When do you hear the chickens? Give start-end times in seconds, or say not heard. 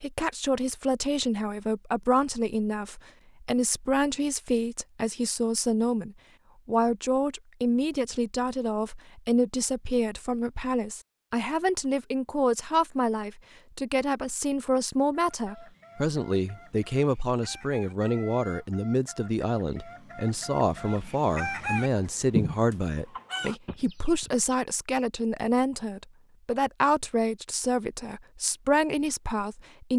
15.2-24.4.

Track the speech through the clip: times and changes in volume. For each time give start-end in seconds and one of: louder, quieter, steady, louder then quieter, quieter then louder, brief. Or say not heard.
0.0-29.9 steady.